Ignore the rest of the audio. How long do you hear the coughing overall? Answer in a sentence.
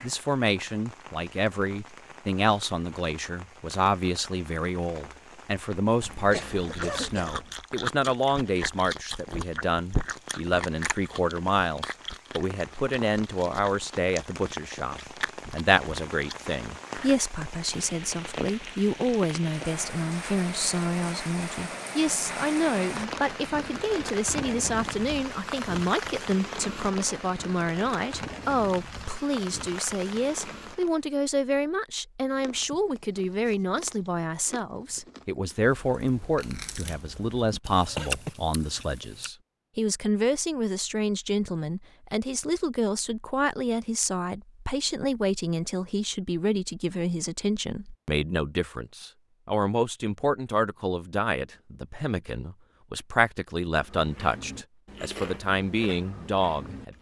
You can hear the coughing for 2 seconds altogether.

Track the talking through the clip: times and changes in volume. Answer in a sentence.
The talking can be heard from 0.0 to 56.9 s, at a steady volume.